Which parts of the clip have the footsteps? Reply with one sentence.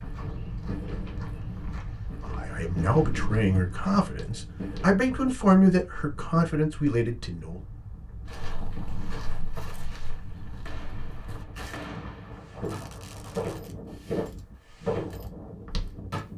You can hear the footsteps from 0.0 to 5.0 s and from 8.2 to 16.2 s.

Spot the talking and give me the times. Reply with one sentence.
You can hear the talking from 2.2 to 7.6 s.